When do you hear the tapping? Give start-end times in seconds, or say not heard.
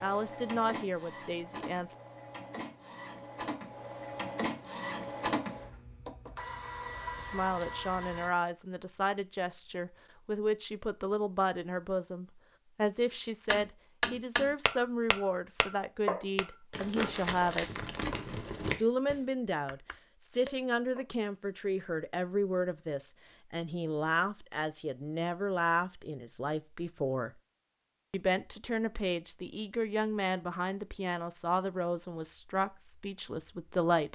13.5-21.1.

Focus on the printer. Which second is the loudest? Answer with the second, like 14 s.
5 s.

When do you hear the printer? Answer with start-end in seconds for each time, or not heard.
0.0-8.3.